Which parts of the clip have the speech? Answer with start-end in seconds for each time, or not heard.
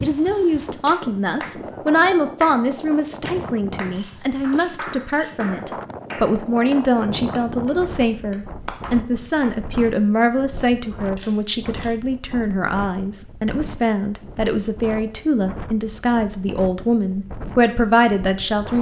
0.0-18.7.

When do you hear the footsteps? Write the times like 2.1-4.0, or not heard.
not heard.